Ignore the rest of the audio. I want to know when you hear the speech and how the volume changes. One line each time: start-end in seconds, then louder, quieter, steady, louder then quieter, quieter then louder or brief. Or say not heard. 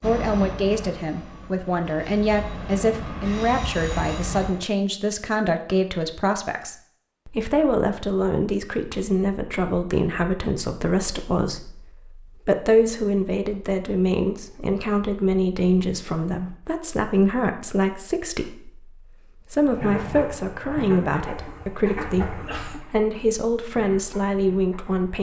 0.0-25.1 steady.